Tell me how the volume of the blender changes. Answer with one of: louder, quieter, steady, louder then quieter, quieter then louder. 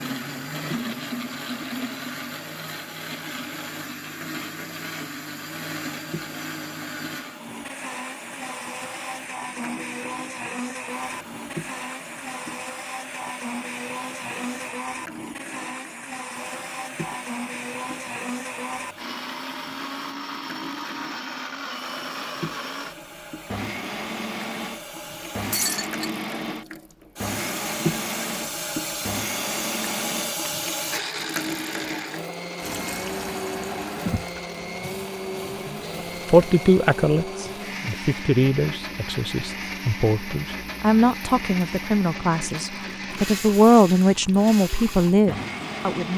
steady.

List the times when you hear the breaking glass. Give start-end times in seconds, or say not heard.
25.5-26.1.